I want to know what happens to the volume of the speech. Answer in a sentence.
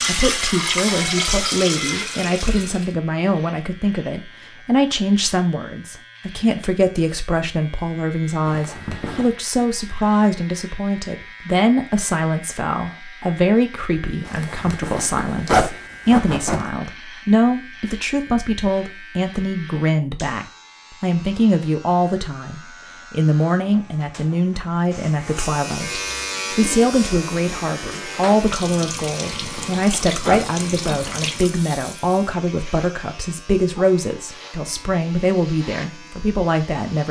The loudness of the speech stays about the same.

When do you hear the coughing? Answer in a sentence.
You can't hear the coughing here.